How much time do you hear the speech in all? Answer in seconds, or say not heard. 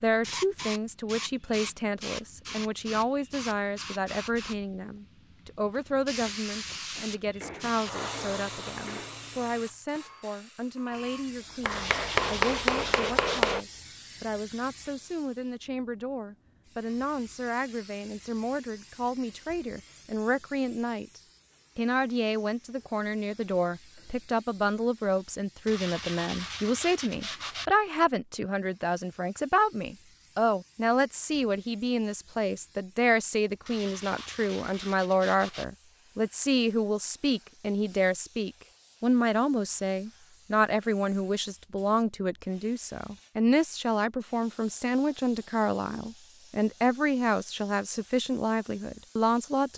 50 s.